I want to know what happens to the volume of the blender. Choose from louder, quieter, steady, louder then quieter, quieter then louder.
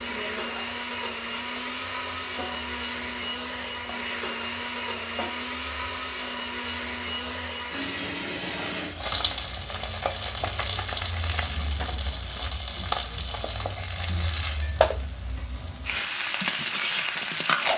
quieter.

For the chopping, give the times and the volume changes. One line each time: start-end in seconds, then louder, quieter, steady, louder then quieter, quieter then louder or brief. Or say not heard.
not heard.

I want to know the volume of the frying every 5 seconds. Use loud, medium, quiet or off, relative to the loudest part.
quiet, medium, loud, loud.